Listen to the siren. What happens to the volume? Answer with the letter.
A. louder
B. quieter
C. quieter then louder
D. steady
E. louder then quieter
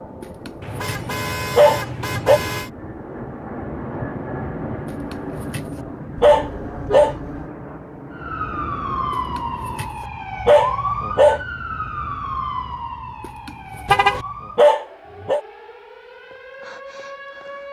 B.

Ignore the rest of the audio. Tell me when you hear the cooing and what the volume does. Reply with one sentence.
The cooing can't be heard in this clip.